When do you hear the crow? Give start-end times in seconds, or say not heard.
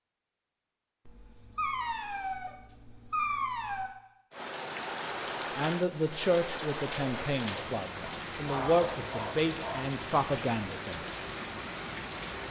not heard.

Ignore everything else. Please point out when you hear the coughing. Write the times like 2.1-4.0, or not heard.
not heard.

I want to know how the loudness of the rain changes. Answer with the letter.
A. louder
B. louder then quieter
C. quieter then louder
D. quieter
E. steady
E.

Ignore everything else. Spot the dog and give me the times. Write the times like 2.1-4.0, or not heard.
1.1-4.0, 8.0-10.0.